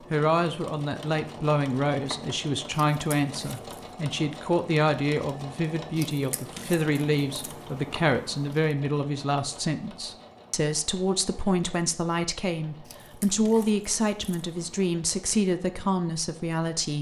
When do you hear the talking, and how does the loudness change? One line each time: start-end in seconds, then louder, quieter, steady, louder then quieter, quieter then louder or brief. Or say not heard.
0.1-16.9 steady.